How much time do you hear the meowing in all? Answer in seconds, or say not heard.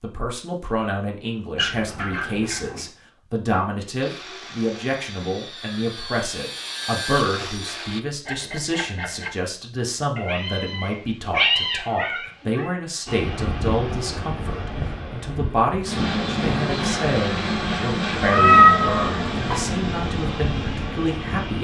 5 s.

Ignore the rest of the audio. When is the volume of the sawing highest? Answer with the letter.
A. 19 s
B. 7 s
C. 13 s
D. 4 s
B.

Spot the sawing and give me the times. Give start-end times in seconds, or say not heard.
4.0-9.3.